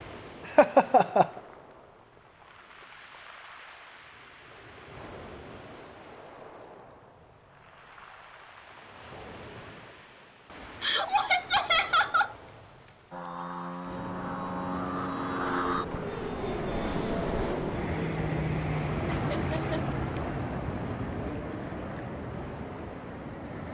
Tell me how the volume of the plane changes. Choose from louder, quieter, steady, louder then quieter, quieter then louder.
quieter.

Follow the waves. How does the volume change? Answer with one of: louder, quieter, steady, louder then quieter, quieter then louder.
louder.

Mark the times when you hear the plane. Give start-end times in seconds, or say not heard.
13.1-23.6.